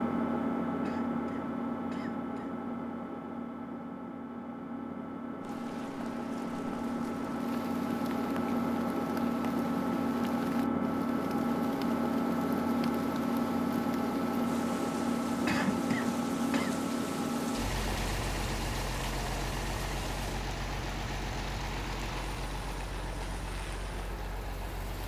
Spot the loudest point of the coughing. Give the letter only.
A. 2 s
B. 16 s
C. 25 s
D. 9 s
B.